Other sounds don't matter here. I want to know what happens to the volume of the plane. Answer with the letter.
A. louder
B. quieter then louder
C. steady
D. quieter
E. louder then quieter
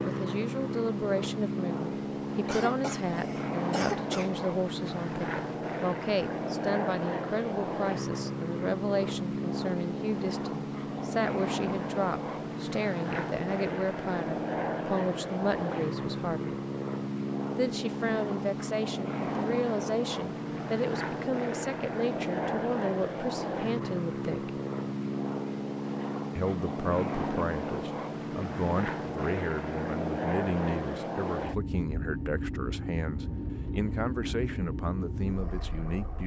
C.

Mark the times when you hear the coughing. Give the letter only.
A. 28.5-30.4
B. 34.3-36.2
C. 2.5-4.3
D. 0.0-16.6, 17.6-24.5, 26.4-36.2
C.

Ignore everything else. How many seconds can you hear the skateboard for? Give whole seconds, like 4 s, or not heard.
not heard.